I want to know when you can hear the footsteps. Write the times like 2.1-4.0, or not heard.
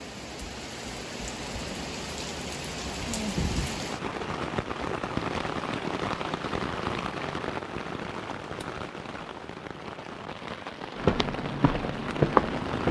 10.9-12.8.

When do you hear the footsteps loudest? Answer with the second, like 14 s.
12 s.